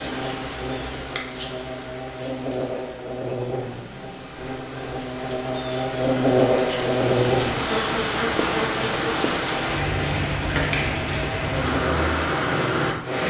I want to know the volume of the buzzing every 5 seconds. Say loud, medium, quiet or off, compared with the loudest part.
medium, loud, medium.